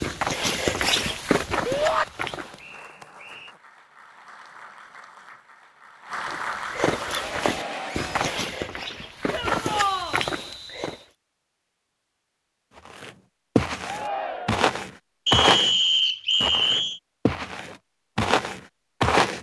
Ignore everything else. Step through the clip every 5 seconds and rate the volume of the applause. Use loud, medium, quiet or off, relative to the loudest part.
quiet, loud, off, off.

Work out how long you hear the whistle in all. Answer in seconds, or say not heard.
4 s.